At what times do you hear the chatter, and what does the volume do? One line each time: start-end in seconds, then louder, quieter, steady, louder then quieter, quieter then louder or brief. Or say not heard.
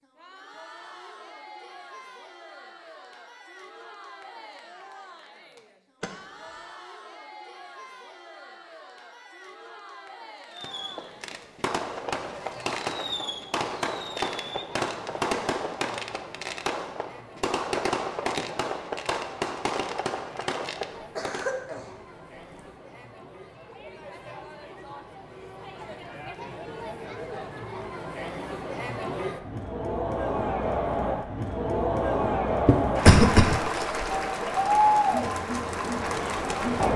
0.0-36.9 louder.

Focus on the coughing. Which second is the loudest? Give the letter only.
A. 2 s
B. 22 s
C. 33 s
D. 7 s
C.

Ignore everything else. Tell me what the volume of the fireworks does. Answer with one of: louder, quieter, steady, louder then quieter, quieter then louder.
steady.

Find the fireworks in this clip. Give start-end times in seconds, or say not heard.
10.5-21.6.